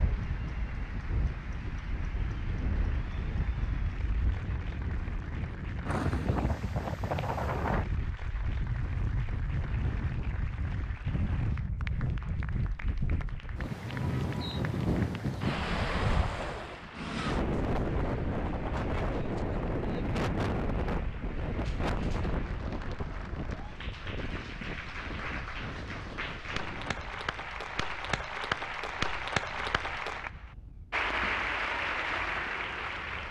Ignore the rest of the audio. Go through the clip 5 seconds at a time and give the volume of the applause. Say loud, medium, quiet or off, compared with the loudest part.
quiet, quiet, quiet, quiet, quiet, loud, loud.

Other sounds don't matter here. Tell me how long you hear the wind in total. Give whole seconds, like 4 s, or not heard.
33 s.